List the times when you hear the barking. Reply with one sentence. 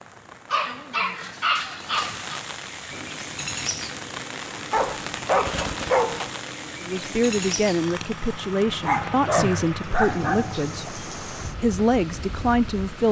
You can hear the barking from 0.5 to 2.4 s, from 4.7 to 6.3 s and from 8.8 to 10.8 s.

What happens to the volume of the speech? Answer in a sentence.
The loudness of the speech goes down, then up.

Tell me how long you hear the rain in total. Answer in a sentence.
You can hear the rain for 13 seconds altogether.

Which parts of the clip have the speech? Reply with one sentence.
You can hear the speech from 6.8 to 13.0 s.